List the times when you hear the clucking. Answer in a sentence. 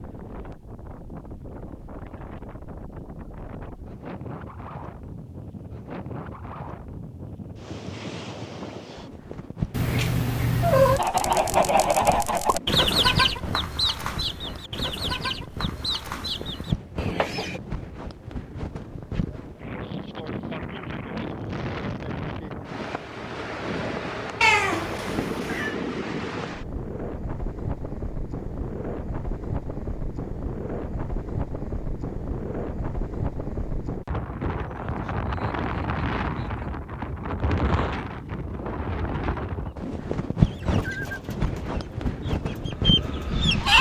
The clucking can be heard from 10.9 to 17.6 s and from 40.4 to 43.7 s.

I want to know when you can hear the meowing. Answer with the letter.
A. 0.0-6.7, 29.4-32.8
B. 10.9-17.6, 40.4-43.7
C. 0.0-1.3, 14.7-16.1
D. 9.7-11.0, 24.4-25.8
D.